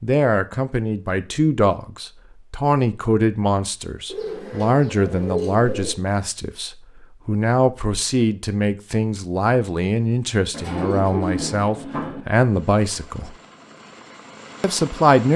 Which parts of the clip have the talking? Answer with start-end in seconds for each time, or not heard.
0.0-13.3, 14.6-15.3.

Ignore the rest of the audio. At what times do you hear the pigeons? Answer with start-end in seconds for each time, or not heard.
4.0-6.0, 10.5-12.2.